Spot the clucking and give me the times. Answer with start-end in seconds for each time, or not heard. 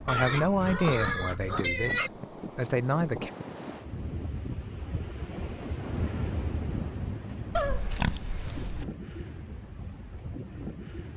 not heard.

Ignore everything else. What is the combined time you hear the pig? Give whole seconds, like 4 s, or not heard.
3 s.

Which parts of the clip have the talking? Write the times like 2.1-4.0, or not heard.
0.0-3.3.